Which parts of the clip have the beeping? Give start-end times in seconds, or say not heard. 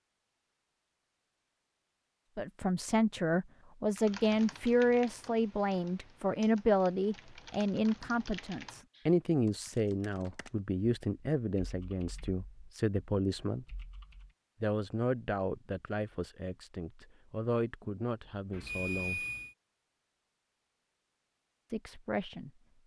18.5-19.6.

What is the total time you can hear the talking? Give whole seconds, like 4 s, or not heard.
17 s.